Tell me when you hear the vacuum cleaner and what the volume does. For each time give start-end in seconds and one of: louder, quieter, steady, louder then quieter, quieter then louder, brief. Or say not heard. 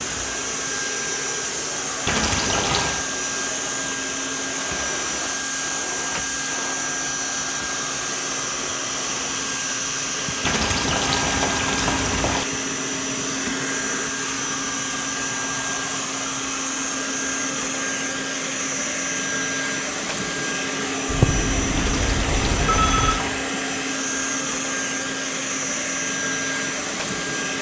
0.0-27.5 steady.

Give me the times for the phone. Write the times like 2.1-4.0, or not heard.
21.1-23.2.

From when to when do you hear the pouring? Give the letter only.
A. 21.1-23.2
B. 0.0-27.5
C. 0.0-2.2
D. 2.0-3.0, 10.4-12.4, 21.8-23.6
D.